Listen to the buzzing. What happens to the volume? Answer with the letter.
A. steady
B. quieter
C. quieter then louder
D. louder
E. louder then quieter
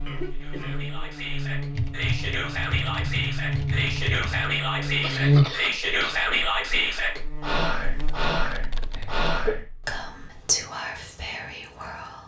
E.